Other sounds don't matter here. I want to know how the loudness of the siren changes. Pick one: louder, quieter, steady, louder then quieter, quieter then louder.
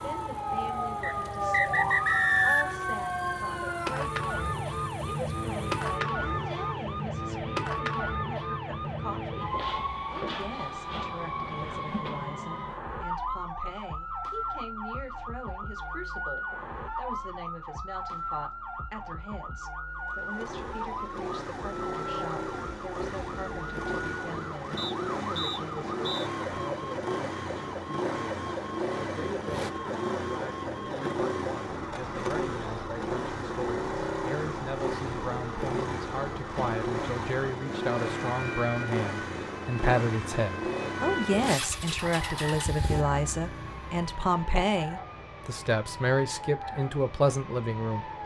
quieter.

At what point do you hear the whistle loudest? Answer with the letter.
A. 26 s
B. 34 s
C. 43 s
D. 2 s
D.